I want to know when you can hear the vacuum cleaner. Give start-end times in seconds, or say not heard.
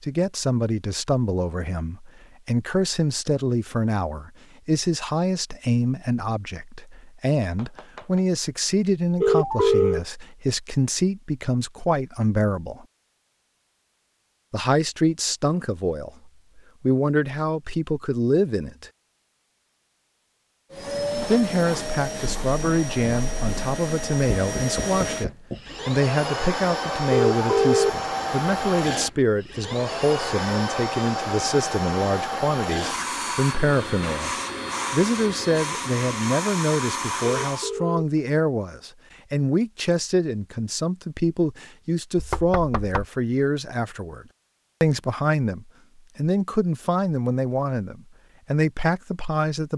20.7-37.7.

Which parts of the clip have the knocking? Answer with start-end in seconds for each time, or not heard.
7.4-8.2, 24.4-25.6, 42.1-43.0.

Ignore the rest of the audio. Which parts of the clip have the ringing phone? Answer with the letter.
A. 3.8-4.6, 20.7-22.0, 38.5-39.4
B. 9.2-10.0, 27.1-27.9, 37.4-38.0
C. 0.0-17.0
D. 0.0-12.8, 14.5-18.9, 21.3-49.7
B.